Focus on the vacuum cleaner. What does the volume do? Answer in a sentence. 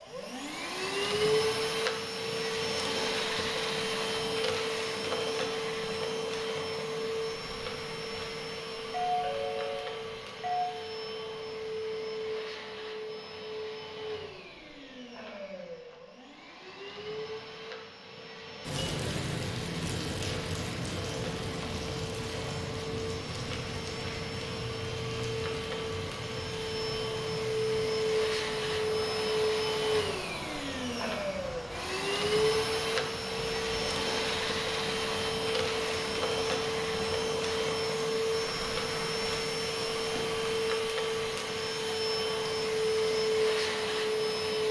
The loudness of the vacuum cleaner goes down, then up.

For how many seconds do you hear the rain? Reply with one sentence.
The rain can be heard for 26 seconds in total.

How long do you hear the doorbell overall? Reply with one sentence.
You can hear the doorbell for 2 seconds altogether.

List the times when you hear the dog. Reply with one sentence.
You can't hear the dog here.